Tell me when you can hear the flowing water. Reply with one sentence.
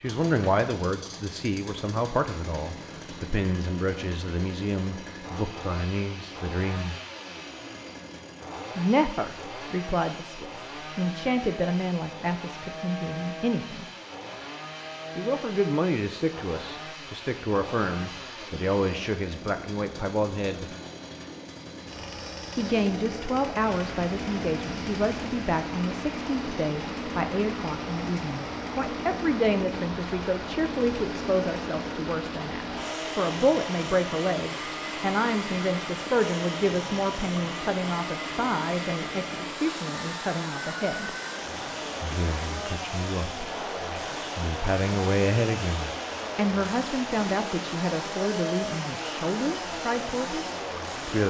The flowing water can be heard from 23.6 to 51.2 s.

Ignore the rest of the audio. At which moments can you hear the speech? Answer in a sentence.
The speech can be heard from 0.0 to 7.0 s, from 8.8 to 13.8 s, from 15.2 to 20.7 s, from 22.6 to 41.1 s, from 42.0 to 43.5 s and from 44.4 to 51.2 s.